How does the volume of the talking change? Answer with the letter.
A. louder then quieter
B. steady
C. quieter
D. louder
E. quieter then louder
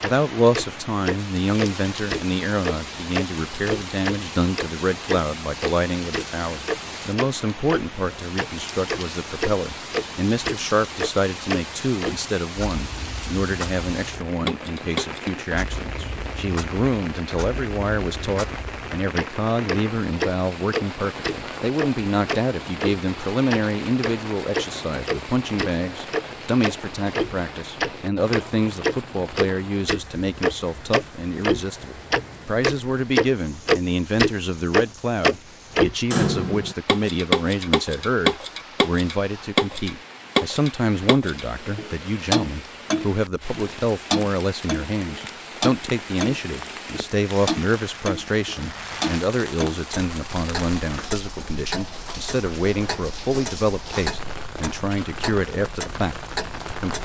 B.